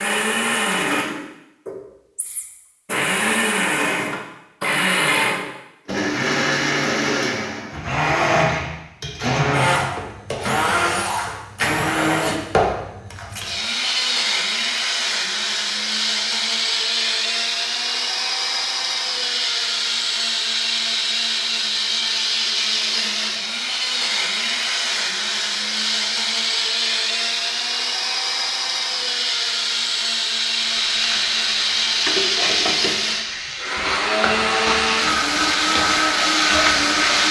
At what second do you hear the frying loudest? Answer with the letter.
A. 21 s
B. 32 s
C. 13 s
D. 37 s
D.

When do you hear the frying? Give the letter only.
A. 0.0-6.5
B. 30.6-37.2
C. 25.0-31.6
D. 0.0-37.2
B.